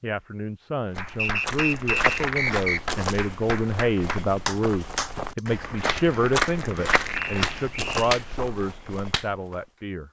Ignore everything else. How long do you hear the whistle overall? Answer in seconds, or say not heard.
3 s.